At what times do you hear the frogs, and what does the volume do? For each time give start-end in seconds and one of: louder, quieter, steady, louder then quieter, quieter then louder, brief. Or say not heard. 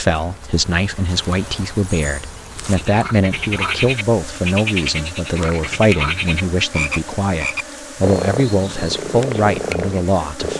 2.7-10.5 steady.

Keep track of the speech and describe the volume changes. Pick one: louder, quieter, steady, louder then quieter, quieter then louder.
steady.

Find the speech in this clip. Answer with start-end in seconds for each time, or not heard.
0.0-10.5.